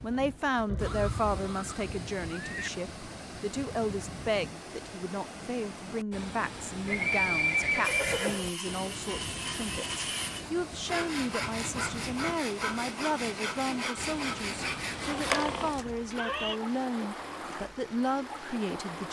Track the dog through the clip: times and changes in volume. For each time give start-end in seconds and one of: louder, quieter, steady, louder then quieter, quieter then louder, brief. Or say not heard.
not heard.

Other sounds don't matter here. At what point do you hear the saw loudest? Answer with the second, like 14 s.
15 s.